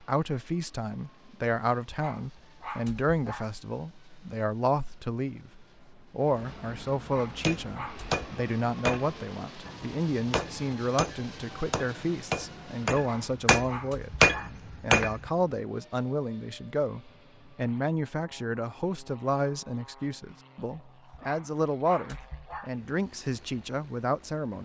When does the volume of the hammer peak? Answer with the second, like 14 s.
14 s.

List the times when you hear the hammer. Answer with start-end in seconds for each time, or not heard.
7.4-15.2.